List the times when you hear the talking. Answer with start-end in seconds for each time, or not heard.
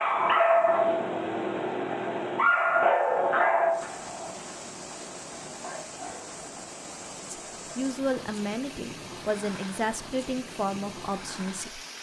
7.3-11.8.